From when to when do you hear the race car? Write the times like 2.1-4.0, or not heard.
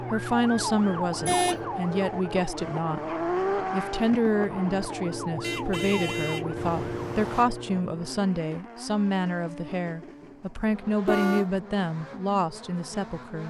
0.0-13.4.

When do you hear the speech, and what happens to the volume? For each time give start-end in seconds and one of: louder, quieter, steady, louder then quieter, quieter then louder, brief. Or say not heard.
0.0-13.4 steady.